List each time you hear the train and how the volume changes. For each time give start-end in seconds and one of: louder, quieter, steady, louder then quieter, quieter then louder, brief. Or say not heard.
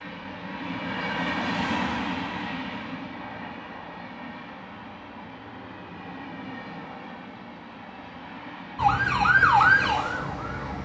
0.0-10.8 quieter.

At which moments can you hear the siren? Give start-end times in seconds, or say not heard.
8.8-10.8.